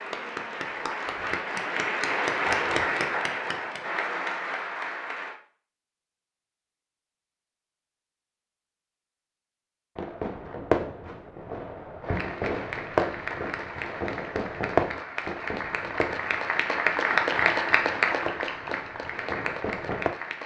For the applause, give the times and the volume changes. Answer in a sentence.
You can hear the applause from 0.0 to 5.4 s, getting louder then quieter; and from 12.0 to 20.4 s, getting louder then quieter.